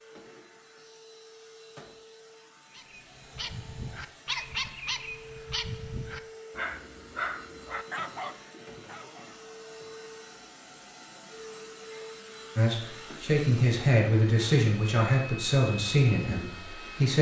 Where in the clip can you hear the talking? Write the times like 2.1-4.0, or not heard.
12.6-17.1.